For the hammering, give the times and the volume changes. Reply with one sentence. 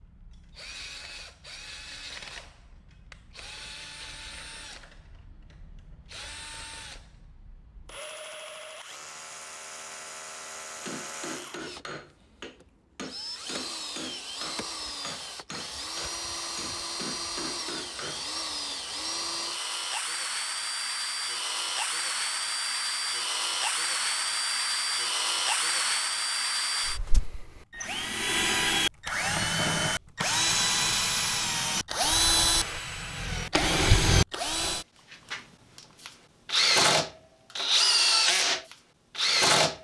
You can hear the hammering from 10.8 to 18.2 s, at a steady volume.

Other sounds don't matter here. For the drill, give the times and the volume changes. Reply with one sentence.
The drill can be heard from 0.0 to 39.7 s, getting louder.